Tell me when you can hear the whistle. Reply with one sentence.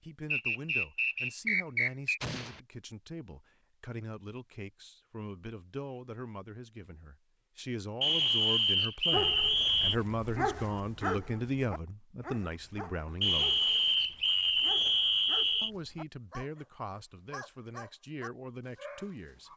You can hear the whistle from 0.3 to 2.2 s, from 8.0 to 9.9 s and from 13.2 to 15.7 s.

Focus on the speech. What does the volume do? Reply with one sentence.
The loudness of the speech goes up, then down.